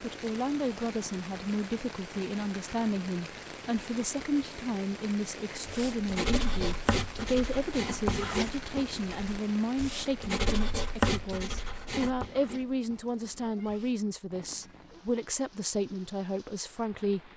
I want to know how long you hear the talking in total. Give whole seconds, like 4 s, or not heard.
17 s.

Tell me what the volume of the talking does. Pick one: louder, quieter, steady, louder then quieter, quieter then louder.
steady.